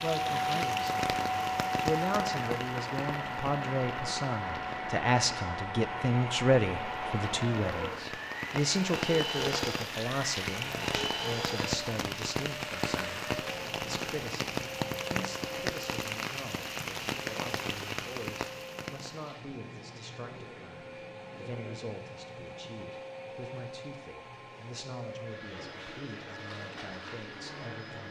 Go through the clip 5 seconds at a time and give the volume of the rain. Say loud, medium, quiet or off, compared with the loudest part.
loud, loud, loud, loud, off, off.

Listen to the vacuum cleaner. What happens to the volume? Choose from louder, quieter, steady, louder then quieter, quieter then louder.
quieter.